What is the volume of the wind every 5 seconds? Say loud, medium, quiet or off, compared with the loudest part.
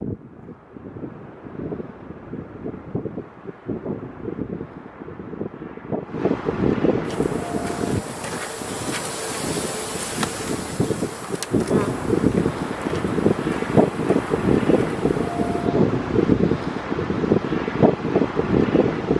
quiet, medium, loud, loud.